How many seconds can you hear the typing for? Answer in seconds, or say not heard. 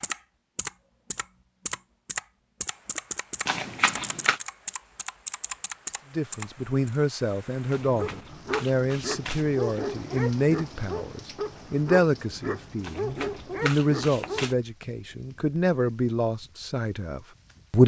7 s.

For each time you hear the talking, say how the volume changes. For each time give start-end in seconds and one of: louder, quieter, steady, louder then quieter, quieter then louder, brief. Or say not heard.
6.1-17.8 steady.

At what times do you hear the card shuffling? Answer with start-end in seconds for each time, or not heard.
3.5-4.4, 7.7-9.5, 12.8-14.6.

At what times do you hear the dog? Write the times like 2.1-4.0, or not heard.
8.0-14.5.